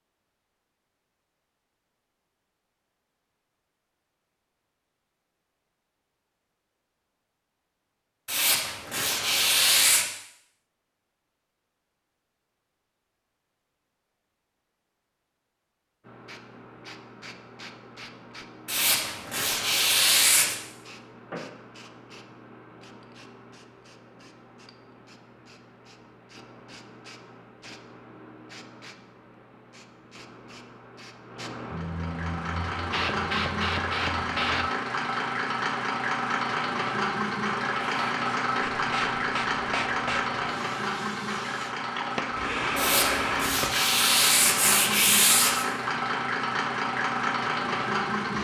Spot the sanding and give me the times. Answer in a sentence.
You can hear the sanding from 8.2 to 10.1 s, from 18.6 to 20.6 s and from 42.8 to 45.6 s.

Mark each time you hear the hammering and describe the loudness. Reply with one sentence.
You can't hear the hammering here.